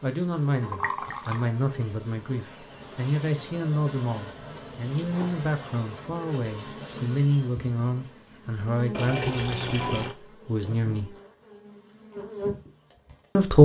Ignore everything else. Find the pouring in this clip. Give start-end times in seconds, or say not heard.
0.6-1.4, 8.9-10.2.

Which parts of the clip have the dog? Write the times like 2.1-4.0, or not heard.
not heard.